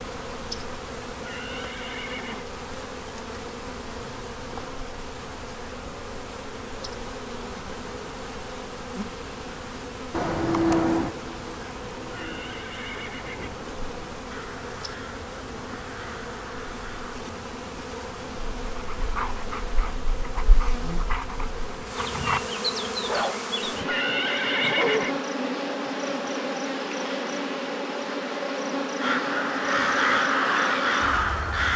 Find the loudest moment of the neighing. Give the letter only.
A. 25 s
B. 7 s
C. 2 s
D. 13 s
A.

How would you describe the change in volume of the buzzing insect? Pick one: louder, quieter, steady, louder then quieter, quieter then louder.
louder.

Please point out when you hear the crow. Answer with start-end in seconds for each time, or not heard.
10.1-17.2, 29.0-31.7.